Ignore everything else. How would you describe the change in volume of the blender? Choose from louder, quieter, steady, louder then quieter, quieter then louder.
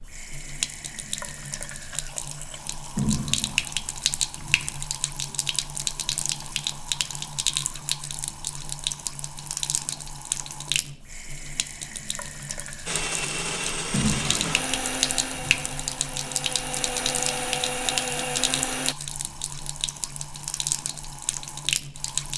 quieter then louder.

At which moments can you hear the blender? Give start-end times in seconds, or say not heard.
12.8-18.9.